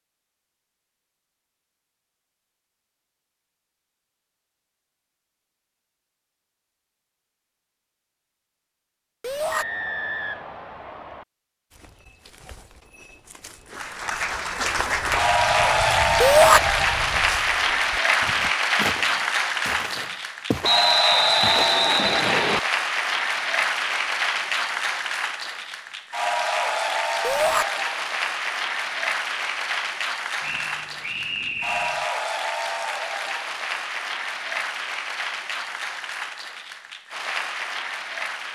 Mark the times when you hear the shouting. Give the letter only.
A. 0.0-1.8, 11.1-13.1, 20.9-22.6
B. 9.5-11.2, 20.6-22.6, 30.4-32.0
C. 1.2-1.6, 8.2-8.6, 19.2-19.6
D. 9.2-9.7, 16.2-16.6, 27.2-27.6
D.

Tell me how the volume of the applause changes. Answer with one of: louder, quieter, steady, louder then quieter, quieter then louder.
quieter.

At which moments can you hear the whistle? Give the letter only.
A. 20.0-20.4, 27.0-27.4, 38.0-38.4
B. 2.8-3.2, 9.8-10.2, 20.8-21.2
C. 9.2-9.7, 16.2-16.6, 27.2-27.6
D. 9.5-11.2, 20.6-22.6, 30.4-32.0
D.